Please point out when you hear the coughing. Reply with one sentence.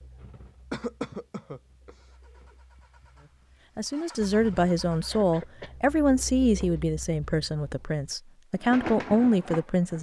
The coughing can be heard from 0.7 to 2.1 s and from 5.1 to 5.8 s.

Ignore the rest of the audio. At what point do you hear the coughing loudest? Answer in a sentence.
The loudest moment of the coughing is at 1 second.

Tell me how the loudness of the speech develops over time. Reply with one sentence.
The volume of the speech goes down, then up.